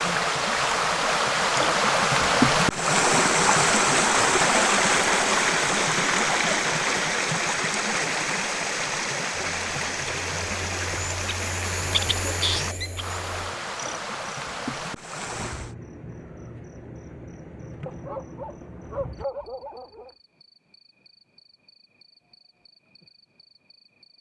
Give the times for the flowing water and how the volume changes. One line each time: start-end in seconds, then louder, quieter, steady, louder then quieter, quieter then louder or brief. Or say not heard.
0.0-15.8 quieter.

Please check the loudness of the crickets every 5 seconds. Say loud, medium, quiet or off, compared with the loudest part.
off, off, loud, medium, quiet.